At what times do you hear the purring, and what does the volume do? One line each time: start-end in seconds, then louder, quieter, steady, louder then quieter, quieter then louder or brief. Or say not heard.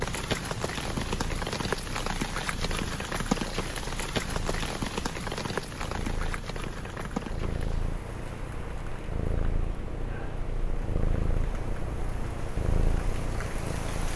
0.0-14.1 louder.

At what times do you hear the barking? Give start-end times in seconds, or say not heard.
not heard.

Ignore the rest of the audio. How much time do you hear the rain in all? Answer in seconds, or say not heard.
14 s.